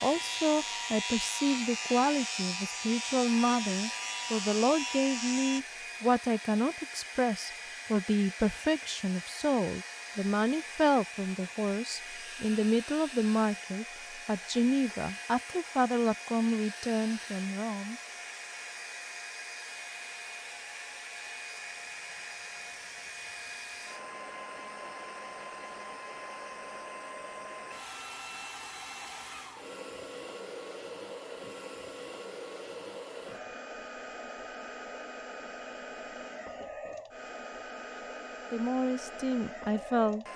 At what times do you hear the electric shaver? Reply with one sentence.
The electric shaver can be heard from 0.0 to 5.6 s.